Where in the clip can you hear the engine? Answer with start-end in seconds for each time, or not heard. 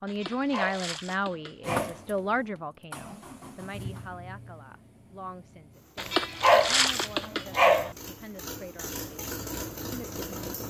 1.6-10.6.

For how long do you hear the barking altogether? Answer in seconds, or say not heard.
4 s.